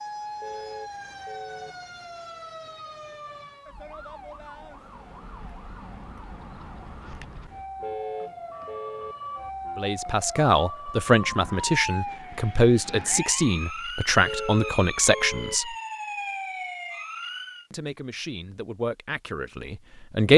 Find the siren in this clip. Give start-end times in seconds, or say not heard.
0.0-17.6.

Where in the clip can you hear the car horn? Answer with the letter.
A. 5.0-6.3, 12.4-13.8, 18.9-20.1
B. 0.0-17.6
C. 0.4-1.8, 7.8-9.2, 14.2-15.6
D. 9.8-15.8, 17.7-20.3
C.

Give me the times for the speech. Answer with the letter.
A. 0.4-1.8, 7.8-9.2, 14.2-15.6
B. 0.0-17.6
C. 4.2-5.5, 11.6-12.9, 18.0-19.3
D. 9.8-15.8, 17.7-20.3
D.